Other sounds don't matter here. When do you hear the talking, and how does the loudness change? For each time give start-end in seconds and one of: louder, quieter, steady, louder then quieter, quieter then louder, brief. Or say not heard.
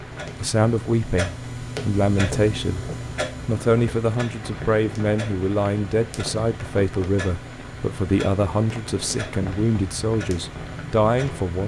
0.4-11.6 steady.